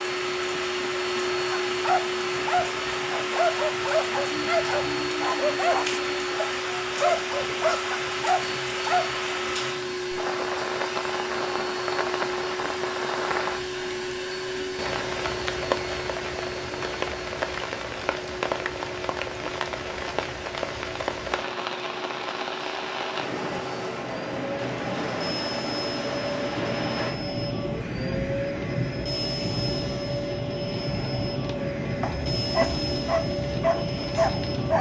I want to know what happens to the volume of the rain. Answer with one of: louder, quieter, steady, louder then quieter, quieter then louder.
steady.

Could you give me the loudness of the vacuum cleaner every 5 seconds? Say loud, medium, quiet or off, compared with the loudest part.
loud, loud, loud, medium, medium, loud, loud.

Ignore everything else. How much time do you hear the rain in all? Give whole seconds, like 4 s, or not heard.
35 s.